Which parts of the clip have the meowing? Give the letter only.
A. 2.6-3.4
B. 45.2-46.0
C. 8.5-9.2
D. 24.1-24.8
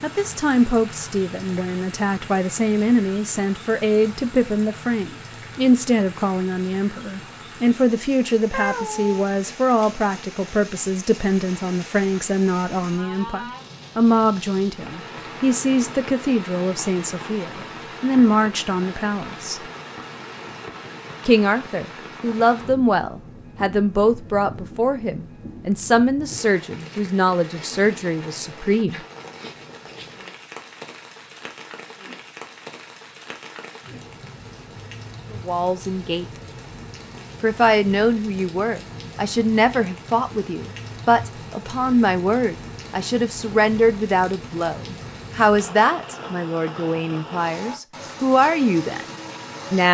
C.